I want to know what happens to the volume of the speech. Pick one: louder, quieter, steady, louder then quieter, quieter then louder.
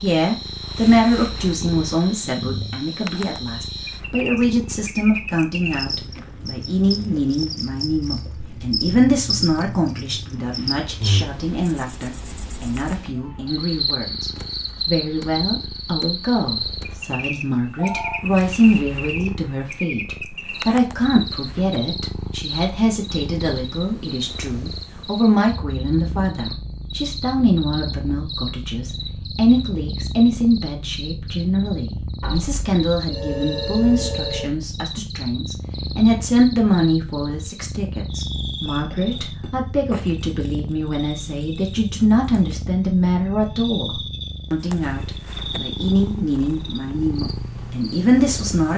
steady.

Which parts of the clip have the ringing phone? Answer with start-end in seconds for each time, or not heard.
16.9-18.2, 32.2-34.5.